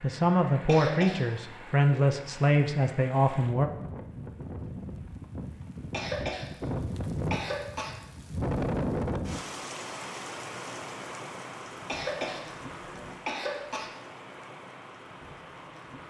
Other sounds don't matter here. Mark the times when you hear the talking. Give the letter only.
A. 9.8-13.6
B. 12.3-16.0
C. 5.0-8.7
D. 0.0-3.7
D.